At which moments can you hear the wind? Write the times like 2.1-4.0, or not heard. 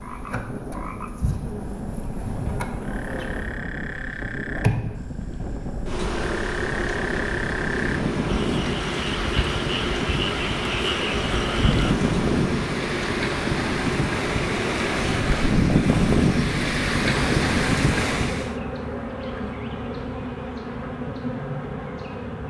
0.0-18.6.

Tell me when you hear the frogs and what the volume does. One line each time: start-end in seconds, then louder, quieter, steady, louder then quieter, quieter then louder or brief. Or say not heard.
0.0-11.9 louder.